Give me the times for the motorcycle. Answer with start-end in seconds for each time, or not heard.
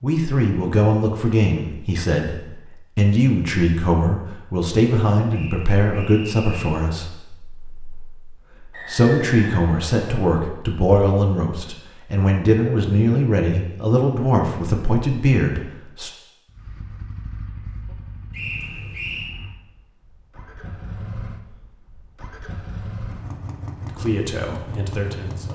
16.4-25.5.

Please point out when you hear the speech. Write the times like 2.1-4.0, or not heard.
0.0-16.1, 23.9-25.5.